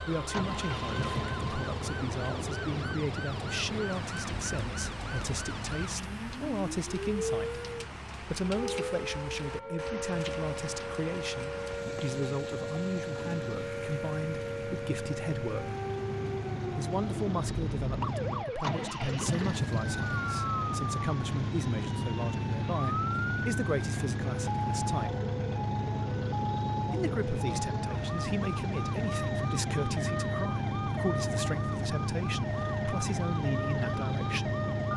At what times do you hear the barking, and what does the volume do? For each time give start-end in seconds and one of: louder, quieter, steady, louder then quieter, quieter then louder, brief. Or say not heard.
not heard.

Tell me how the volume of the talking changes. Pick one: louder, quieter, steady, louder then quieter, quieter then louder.
steady.